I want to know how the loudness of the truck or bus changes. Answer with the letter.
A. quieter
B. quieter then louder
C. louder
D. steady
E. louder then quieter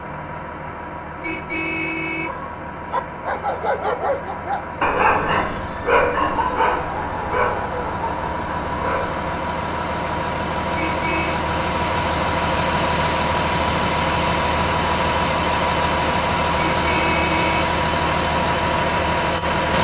C.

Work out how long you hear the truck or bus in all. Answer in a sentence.
You can hear the truck or bus for 20 seconds altogether.